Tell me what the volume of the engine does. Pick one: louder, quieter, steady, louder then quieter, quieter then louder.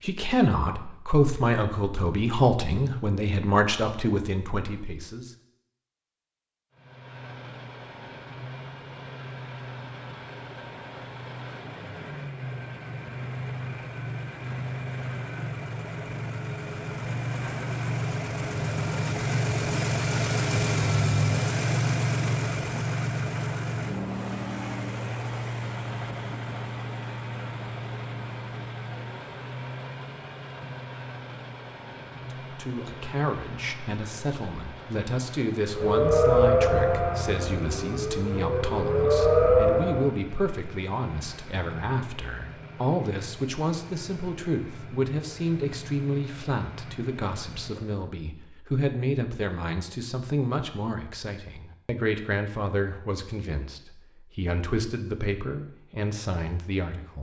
louder then quieter.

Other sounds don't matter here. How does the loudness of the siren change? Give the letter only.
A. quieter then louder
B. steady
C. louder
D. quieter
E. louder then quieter
A.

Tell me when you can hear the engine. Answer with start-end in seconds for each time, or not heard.
6.7-48.0.